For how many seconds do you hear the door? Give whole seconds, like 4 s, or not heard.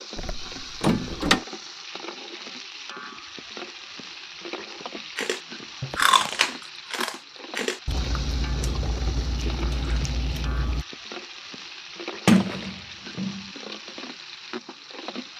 3 s.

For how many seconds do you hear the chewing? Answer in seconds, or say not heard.
6 s.